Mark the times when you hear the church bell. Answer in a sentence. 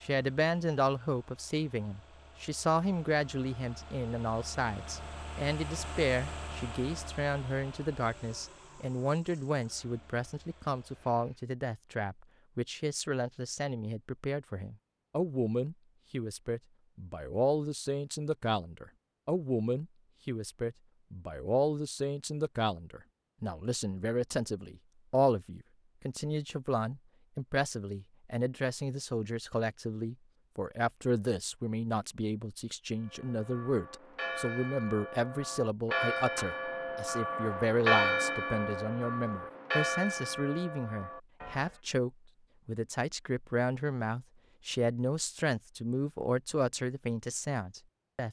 The church bell can be heard from 33.0 to 41.8 s.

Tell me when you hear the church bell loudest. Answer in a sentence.
The loudest moment of the church bell is at 38 seconds.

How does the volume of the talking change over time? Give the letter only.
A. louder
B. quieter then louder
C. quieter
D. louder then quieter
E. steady
E.